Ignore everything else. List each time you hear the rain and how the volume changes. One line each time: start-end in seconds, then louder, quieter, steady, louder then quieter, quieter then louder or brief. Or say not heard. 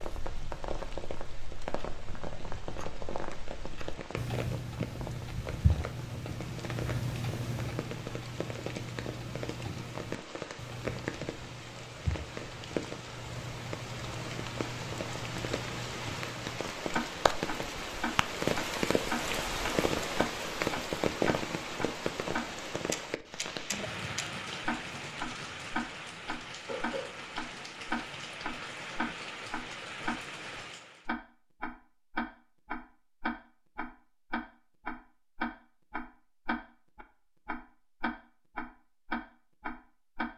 0.0-31.1 louder then quieter.